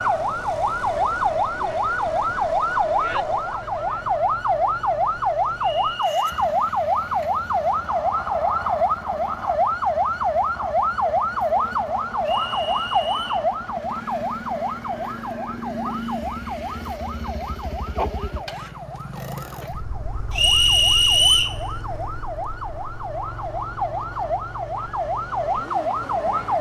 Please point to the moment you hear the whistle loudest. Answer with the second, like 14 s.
21 s.